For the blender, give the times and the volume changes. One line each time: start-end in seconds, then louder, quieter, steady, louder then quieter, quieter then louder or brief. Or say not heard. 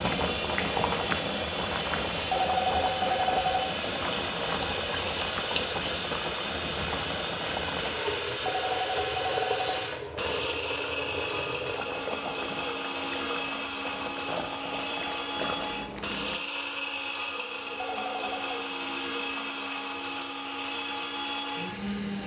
0.0-22.2 steady.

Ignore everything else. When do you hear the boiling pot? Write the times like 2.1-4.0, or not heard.
0.0-16.4.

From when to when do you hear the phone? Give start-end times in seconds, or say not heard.
2.3-3.6, 8.4-9.8, 17.8-18.6.